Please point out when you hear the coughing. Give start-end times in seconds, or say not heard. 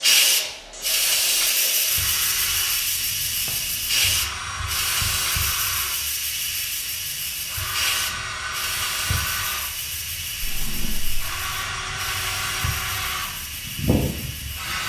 not heard.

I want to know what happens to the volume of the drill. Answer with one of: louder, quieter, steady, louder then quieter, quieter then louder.
louder.